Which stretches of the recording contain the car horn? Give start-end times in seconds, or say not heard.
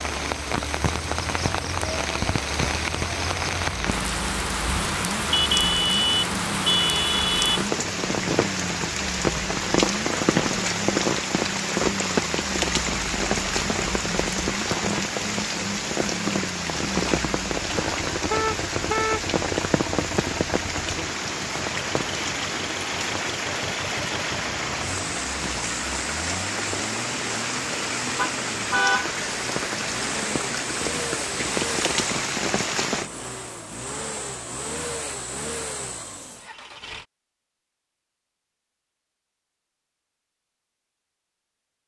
5.3-7.7, 18.2-19.3, 28.1-29.1.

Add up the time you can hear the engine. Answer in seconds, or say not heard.
37 s.